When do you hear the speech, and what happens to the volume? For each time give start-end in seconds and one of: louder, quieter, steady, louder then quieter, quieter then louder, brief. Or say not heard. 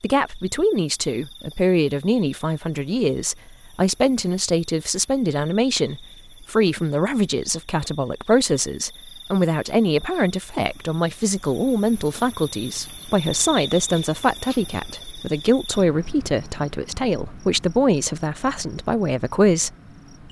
0.0-19.7 steady.